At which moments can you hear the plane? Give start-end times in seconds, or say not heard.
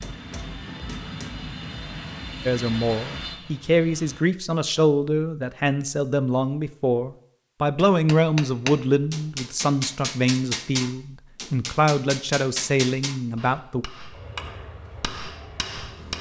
0.0-4.2, 14.1-16.1.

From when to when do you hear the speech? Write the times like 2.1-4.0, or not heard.
2.5-13.8.